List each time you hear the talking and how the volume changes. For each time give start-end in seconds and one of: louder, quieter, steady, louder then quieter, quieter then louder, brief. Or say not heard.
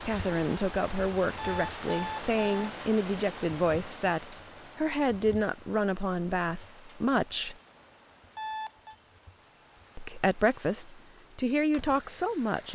0.0-7.5 steady
9.9-12.7 brief.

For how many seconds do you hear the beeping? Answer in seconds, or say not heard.
2 s.